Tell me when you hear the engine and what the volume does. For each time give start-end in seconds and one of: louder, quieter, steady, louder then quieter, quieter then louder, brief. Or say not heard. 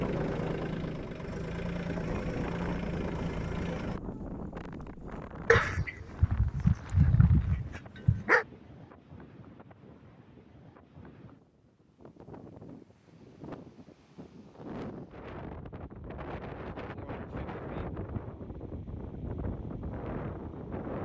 0.0-4.0 steady.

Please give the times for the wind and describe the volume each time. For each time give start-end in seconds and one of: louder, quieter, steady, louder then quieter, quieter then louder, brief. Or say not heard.
0.0-20.9 quieter then louder.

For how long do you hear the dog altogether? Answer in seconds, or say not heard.
3 s.